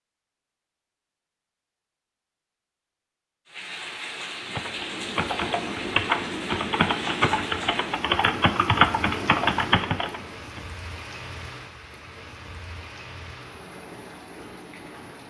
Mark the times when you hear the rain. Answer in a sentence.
The rain can be heard from 3.5 to 15.2 s.